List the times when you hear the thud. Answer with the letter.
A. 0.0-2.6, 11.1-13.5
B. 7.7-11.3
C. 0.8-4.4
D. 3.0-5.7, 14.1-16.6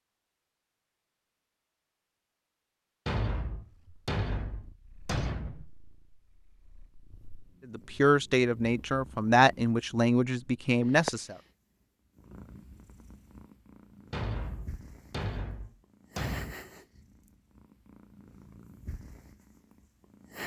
D.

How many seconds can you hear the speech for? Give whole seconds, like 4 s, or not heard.
4 s.